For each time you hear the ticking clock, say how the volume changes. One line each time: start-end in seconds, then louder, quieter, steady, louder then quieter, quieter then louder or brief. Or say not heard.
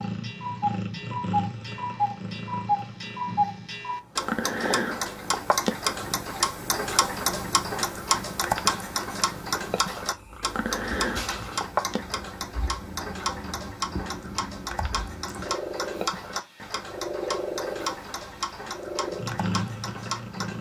0.0-20.5 quieter.